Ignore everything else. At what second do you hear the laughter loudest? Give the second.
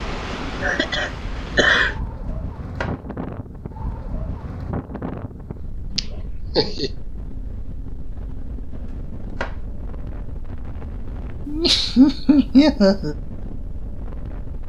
13 s.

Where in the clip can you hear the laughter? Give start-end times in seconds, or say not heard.
0.6-1.9, 6.0-6.9, 11.4-13.2.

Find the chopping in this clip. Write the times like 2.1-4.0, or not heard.
2.2-3.0, 8.8-9.6.